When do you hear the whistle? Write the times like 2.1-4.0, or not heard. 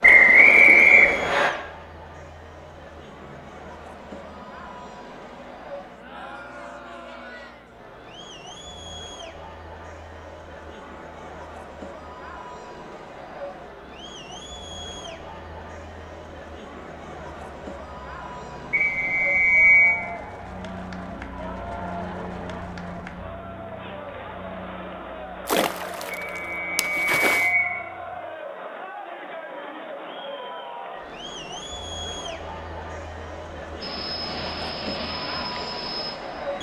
0.0-1.5, 18.7-19.9, 26.1-27.7.